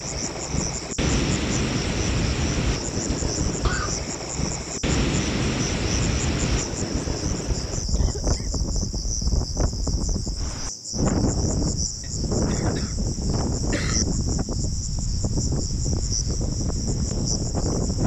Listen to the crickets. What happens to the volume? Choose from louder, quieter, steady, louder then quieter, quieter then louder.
steady.